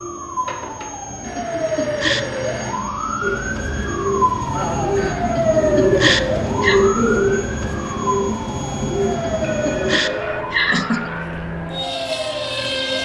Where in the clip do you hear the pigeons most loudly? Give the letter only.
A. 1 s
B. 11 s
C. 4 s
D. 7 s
D.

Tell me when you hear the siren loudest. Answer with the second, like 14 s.
6 s.